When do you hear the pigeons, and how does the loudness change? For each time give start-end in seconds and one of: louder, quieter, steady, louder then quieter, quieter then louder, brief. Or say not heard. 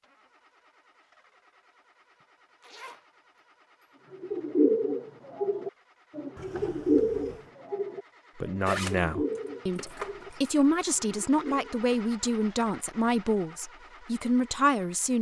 4.1-11.8 quieter.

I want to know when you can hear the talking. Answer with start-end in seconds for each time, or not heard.
8.4-15.1.